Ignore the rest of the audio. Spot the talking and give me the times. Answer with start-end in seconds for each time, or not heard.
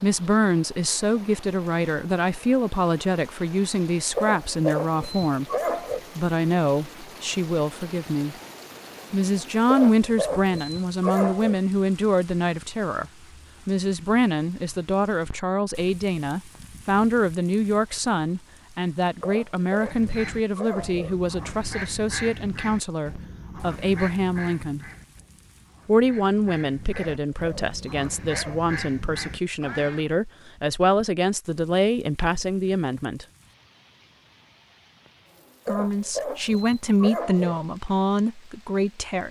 0.0-5.5, 6.2-8.3, 9.1-13.1, 13.7-24.9, 25.9-33.2, 35.6-39.2.